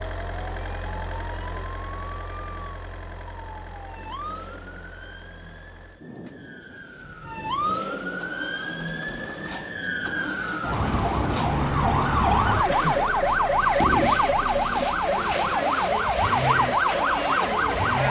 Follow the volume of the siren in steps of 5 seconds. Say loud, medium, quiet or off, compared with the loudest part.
quiet, medium, loud, loud.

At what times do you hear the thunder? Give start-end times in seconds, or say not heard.
6.0-7.2.